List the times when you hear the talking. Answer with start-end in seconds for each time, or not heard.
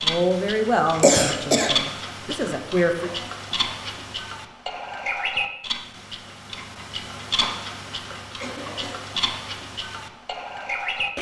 0.0-3.1.